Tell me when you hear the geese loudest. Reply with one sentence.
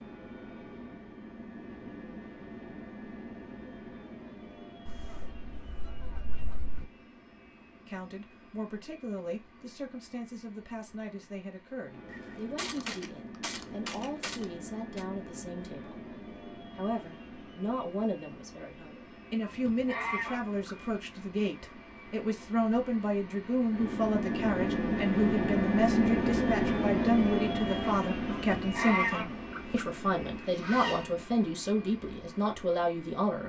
The loudest moment of the geese is at 29 seconds.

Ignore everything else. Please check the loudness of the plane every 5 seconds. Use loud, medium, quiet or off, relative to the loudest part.
quiet, quiet, quiet, quiet, medium, loud, quiet.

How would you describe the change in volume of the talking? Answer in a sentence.
The volume of the talking goes up.